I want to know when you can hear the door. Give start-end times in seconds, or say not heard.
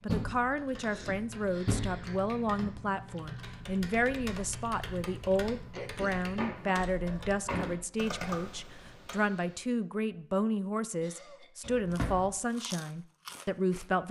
0.1-2.7, 6.3-7.8, 11.6-12.3.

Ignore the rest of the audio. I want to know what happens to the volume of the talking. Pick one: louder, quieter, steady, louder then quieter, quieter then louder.
steady.